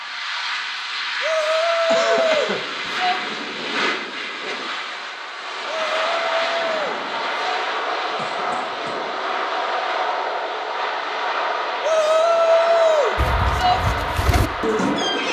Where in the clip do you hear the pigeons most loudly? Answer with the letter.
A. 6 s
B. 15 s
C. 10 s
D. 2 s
B.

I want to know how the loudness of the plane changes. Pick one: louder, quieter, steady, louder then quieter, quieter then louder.
steady.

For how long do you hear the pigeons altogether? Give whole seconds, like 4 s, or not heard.
2 s.